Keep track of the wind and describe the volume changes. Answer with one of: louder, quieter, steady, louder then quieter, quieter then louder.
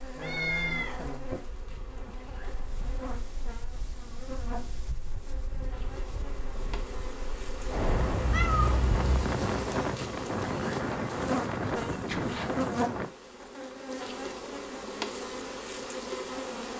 louder.